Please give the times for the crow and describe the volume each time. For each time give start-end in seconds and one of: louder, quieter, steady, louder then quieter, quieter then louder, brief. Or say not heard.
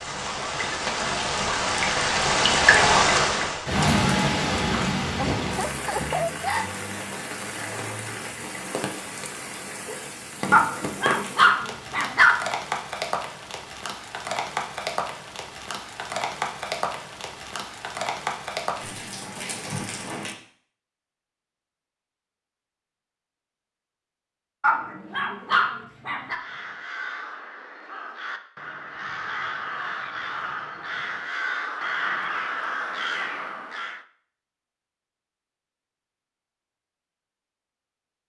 26.2-34.0 louder.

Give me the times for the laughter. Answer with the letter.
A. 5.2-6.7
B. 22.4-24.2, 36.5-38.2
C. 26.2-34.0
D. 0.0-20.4
A.